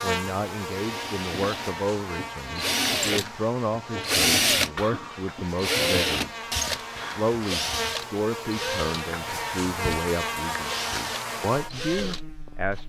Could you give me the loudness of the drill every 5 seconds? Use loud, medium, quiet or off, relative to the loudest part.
loud, loud, medium.